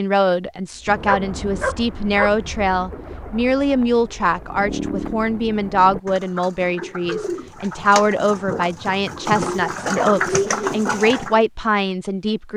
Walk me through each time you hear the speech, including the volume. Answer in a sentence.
You can hear the speech from 0.0 to 12.5 s, at a steady volume.